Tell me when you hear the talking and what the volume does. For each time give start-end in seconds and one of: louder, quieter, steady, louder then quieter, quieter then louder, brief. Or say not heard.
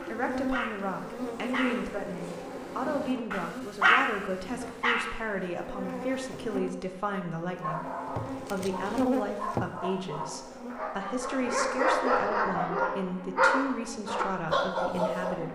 0.0-15.4 steady.